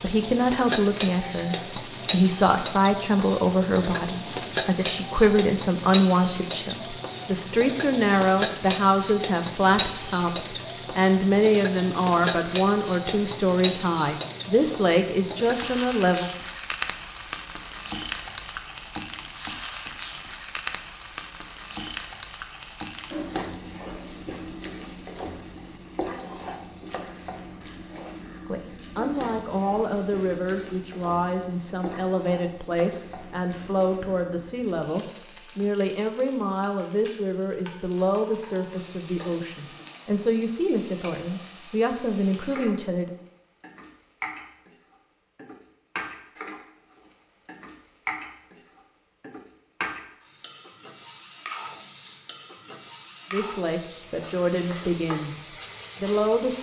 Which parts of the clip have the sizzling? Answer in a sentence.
You can hear the sizzling from 0.0 to 56.5 s.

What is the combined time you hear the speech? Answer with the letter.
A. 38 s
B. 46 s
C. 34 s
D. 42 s
C.